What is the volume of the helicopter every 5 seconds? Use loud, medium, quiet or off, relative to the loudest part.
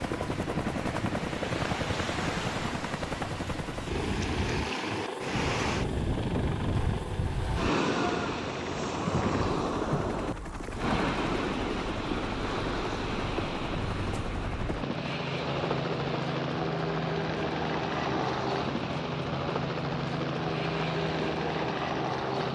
loud, medium, medium, loud, loud.